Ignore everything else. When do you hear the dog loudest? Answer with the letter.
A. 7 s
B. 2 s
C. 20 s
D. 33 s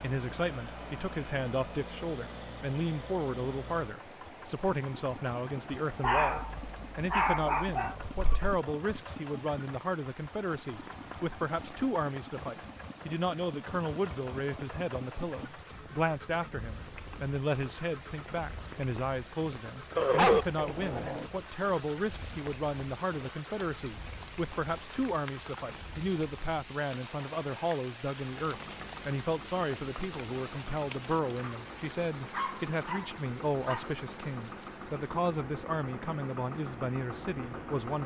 C.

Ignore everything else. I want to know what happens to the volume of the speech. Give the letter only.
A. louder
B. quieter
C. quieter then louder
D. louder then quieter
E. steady
E.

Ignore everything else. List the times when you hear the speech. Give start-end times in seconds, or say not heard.
0.0-38.0.